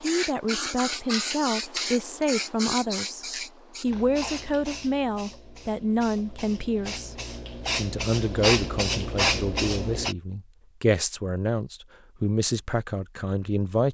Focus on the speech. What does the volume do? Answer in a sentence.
The loudness of the speech stays about the same.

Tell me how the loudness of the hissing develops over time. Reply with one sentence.
The volume of the hissing goes down, then up.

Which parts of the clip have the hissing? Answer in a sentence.
You can hear the hissing from 0.0 to 10.2 s.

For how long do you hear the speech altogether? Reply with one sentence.
You can hear the speech for 13 seconds altogether.